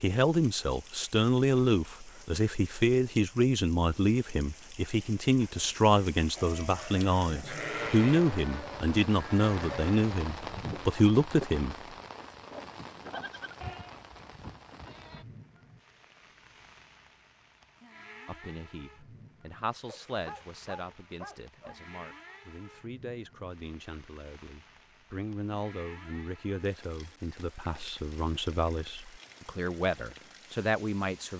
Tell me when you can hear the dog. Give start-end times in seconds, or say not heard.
19.9-21.8.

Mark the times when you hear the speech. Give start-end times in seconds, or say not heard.
0.0-11.8, 18.2-31.3.